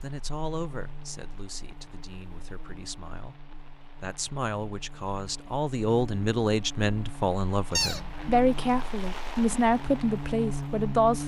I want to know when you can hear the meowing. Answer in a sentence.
The meowing can be heard from 7.8 to 8.4 s.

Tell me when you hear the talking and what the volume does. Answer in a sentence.
The talking can be heard from 0.0 to 11.2 s, getting louder.